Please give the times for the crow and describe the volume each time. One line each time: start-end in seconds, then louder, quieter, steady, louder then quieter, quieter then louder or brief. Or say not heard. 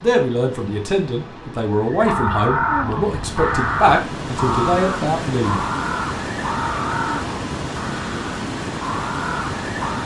1.9-10.0 quieter.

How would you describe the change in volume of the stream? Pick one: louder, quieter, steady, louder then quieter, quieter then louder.
louder.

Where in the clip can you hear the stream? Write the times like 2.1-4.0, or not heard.
0.0-10.0.